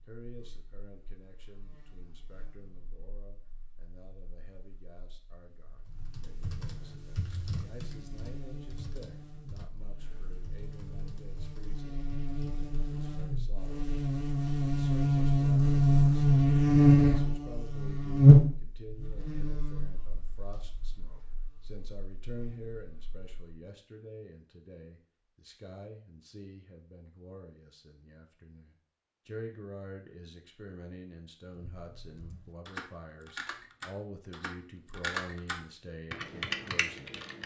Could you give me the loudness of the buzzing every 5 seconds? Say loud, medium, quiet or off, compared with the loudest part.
quiet, quiet, quiet, loud, quiet, off, off, off.